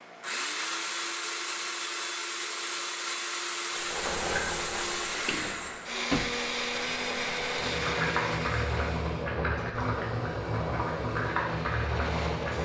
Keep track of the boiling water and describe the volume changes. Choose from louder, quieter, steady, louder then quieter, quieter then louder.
quieter then louder.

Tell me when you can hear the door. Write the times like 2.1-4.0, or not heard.
5.2-6.3.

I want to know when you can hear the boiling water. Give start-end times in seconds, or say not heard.
3.7-12.5.